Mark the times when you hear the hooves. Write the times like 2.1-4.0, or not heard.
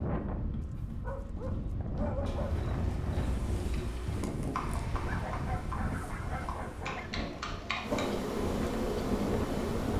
2.2-8.1.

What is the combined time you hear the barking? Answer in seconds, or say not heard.
4 s.